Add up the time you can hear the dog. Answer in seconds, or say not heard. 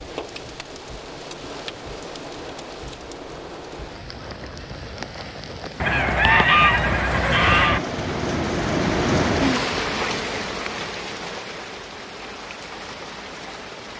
not heard.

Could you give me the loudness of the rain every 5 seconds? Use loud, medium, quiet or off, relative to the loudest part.
medium, loud, medium.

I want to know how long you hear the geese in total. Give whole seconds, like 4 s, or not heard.
2 s.